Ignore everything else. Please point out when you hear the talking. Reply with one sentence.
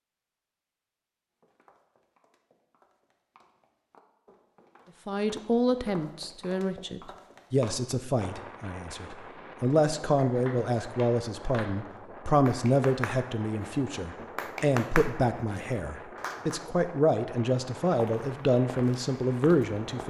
You can hear the talking from 5.0 to 20.0 s.